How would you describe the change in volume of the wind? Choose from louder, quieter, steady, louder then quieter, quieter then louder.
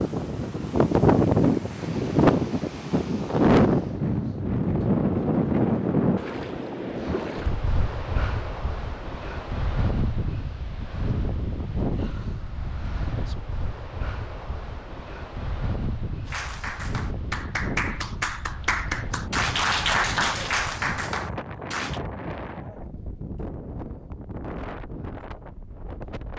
quieter.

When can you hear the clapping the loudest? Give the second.
20 s.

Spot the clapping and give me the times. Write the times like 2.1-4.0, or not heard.
16.2-22.0.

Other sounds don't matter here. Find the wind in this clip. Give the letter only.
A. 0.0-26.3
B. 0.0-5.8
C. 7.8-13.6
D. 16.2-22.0
A.